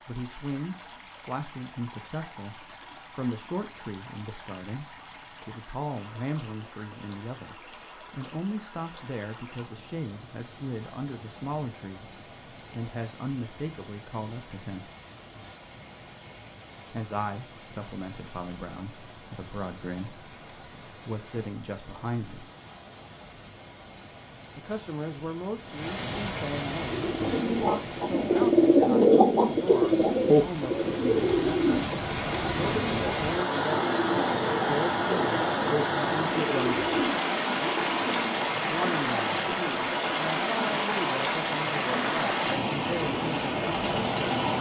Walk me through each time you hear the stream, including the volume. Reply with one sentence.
You can hear the stream from 0.0 to 44.5 s, getting louder.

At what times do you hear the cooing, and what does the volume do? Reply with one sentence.
You can hear the cooing from 26.8 to 38.5 s, getting quieter.